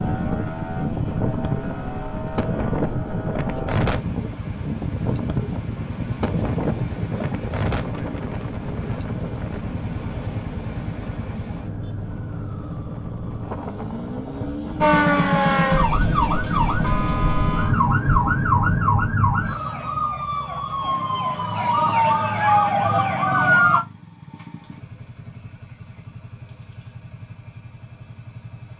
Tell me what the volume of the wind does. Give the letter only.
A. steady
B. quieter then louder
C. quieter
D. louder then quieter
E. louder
C.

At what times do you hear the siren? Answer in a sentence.
You can hear the siren from 14.8 to 23.8 s.